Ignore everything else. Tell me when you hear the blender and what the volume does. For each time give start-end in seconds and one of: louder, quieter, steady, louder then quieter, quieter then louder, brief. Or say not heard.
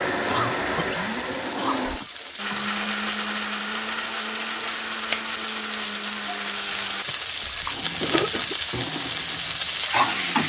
0.0-10.4 quieter.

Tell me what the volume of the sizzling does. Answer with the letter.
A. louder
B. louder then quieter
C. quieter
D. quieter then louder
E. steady
A.